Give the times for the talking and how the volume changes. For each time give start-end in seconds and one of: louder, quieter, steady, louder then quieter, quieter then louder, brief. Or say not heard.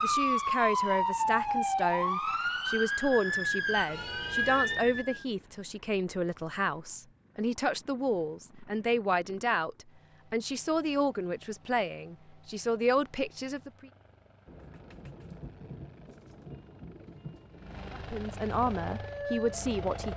0.0-13.9 steady
17.9-20.1 brief.